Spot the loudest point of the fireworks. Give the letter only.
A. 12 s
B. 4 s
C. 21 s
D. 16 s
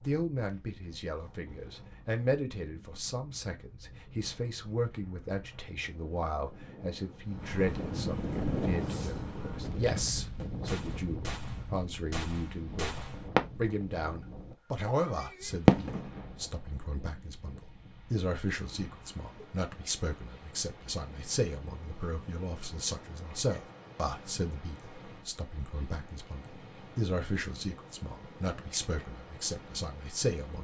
D.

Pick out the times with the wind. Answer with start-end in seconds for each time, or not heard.
0.0-30.5.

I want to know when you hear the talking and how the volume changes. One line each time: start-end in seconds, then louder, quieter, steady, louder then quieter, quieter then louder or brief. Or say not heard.
0.1-30.5 steady.